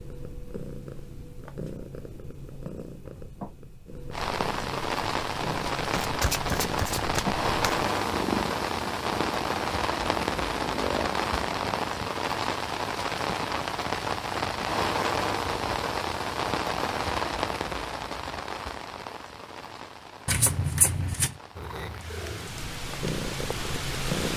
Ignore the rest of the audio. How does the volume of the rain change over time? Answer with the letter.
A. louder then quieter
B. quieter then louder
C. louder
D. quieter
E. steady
D.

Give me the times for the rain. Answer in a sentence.
You can hear the rain from 4.1 to 24.3 s.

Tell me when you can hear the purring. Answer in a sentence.
The purring can be heard from 0.0 to 12.0 s and from 21.6 to 24.3 s.